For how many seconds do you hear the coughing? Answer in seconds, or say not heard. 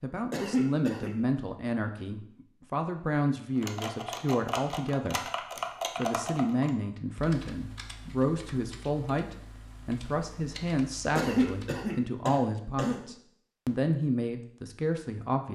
3 s.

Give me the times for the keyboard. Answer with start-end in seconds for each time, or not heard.
3.5-11.8.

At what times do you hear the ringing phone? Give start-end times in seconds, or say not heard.
not heard.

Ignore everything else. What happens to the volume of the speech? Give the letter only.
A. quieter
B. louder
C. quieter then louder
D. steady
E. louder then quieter
D.